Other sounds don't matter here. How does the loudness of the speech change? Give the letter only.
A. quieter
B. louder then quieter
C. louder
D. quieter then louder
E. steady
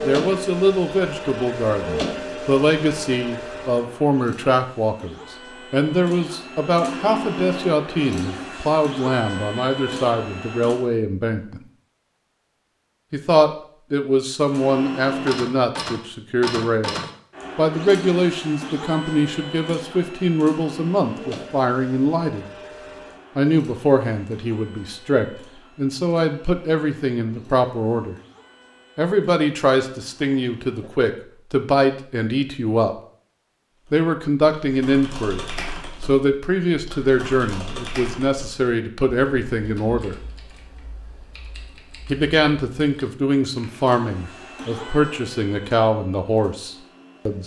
E.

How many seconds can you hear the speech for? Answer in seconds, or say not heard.
41 s.